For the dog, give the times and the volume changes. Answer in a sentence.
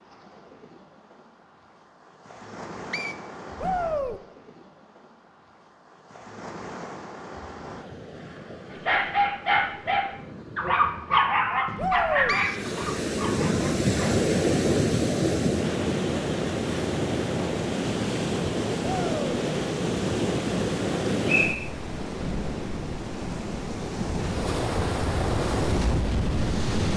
The dog can be heard from 8.7 to 14.2 s, getting quieter.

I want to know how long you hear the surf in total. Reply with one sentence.
You can hear the surf for 27 seconds altogether.